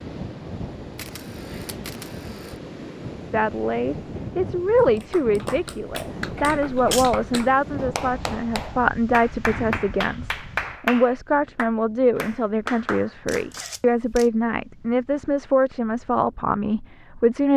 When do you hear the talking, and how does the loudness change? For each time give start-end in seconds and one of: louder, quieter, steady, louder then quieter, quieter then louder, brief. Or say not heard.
3.3-17.5 steady.